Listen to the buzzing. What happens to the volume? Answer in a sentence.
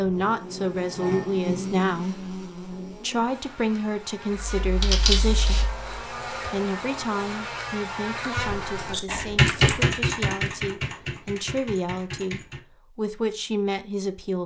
The loudness of the buzzing goes down, then up.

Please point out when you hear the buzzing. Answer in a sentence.
The buzzing can be heard from 0.0 to 8.9 s.